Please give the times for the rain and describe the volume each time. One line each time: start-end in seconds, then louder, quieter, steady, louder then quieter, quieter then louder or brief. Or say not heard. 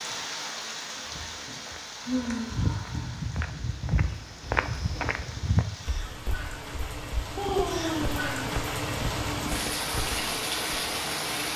0.0-11.5 quieter then louder.